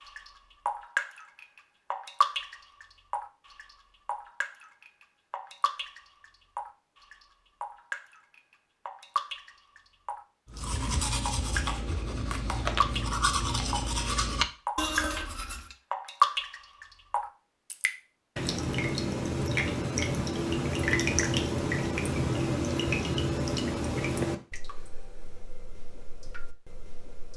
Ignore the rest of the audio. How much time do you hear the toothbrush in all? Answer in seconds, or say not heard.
5 s.